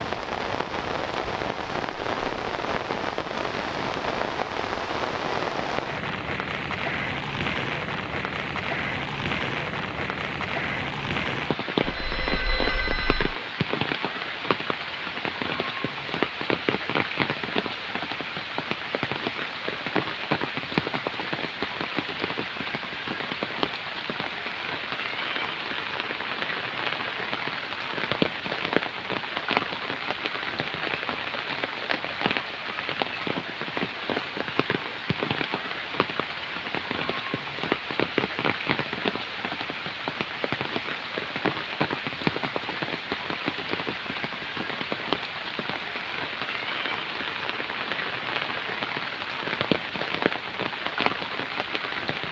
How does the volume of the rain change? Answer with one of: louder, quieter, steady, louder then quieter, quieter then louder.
steady.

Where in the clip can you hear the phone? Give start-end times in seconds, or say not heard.
11.8-13.3.